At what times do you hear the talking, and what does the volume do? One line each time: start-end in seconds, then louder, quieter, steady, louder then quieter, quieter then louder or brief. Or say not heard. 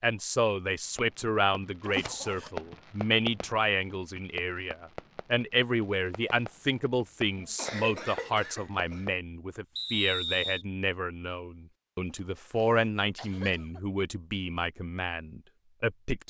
0.0-16.2 steady.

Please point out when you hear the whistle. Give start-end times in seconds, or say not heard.
9.8-10.7.